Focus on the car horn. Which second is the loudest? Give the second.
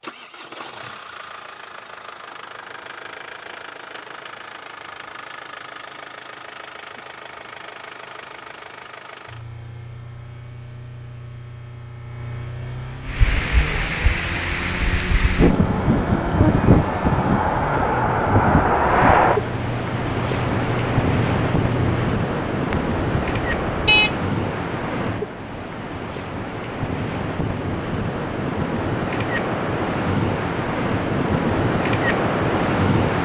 24 s.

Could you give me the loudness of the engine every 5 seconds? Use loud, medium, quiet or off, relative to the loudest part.
medium, medium, medium, loud, loud, off, off.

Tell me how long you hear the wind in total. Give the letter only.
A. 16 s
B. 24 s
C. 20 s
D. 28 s
C.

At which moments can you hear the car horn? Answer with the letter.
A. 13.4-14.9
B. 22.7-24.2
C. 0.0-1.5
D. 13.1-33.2
B.